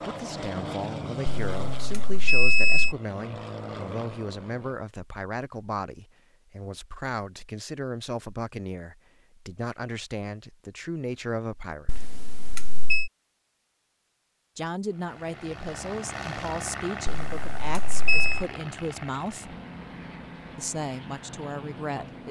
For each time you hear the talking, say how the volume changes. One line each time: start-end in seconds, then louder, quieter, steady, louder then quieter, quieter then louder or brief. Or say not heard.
0.1-12.1 steady
14.6-19.6 steady
20.6-22.2 brief.